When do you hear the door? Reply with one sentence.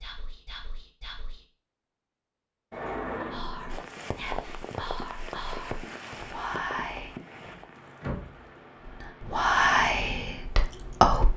You can hear the door from 2.7 to 3.9 s and from 7.4 to 8.4 s.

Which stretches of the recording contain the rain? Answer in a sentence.
The rain can be heard from 3.6 to 11.2 s.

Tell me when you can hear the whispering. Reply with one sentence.
You can hear the whispering from 0.0 to 1.4 s, from 3.2 to 7.2 s and from 8.8 to 11.3 s.